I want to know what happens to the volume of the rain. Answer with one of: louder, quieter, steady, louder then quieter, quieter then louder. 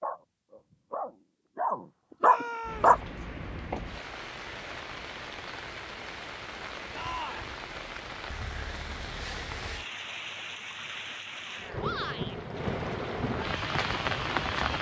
louder.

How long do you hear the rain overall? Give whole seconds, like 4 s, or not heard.
12 s.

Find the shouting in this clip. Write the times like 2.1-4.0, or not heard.
2.2-3.0, 6.9-7.5, 11.8-12.3.